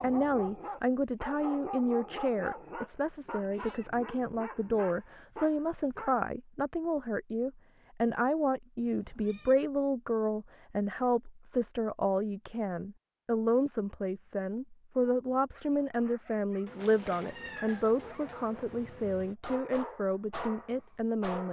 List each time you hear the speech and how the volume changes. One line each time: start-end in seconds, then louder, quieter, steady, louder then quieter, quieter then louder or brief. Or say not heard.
0.0-21.4 steady.